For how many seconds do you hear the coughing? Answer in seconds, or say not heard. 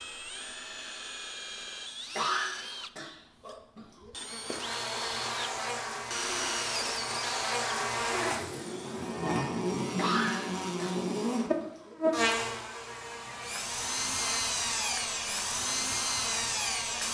4 s.